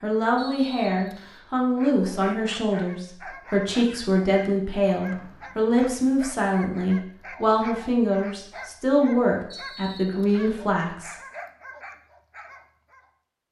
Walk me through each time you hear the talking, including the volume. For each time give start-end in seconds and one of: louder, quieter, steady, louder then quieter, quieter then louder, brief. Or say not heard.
0.0-11.2 steady.